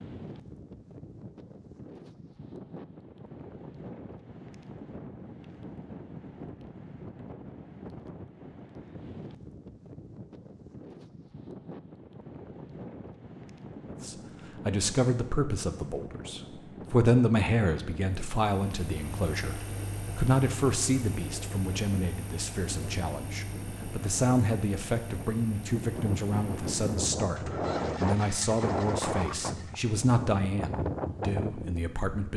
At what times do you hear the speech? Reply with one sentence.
The speech can be heard from 14.0 to 32.3 s.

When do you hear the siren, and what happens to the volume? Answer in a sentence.
The siren can't be heard in this clip.